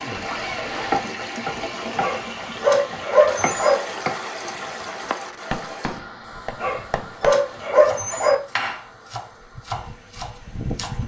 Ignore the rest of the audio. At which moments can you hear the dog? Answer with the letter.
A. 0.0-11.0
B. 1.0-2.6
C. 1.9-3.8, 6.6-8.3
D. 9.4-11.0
C.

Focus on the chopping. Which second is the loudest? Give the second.
1 s.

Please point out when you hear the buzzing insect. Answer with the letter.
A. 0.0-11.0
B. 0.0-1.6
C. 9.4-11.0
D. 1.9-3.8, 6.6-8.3
C.